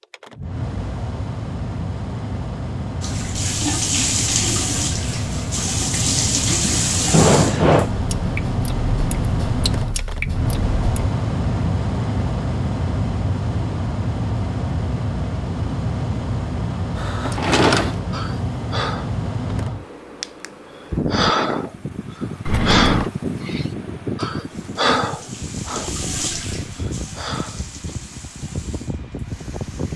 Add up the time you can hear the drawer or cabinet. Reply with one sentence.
You can hear the drawer or cabinet for 2 seconds altogether.